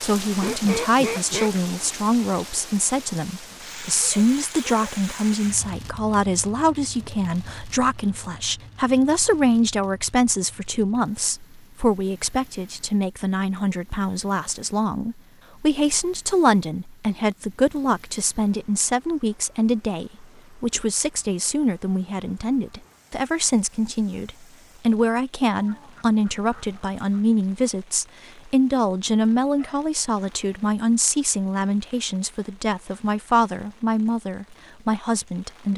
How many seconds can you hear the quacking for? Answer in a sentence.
The quacking can be heard for 3 seconds in total.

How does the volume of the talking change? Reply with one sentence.
The loudness of the talking stays about the same.